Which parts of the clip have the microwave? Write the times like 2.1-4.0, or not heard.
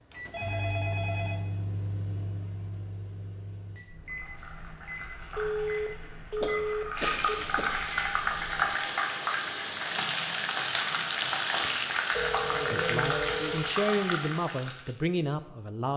0.1-8.7.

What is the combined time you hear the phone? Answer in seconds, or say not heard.
5 s.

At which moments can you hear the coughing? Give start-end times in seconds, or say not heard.
6.4-7.7.